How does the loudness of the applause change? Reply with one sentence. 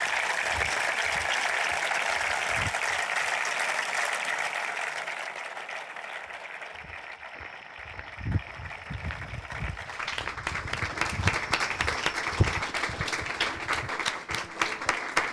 The volume of the applause goes down, then up.